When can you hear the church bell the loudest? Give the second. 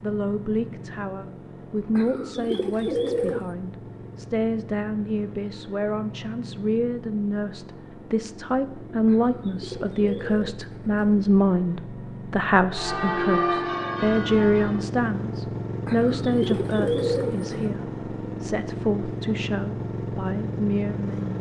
13 s.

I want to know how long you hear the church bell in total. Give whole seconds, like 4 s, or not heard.
2 s.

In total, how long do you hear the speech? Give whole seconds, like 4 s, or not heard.
21 s.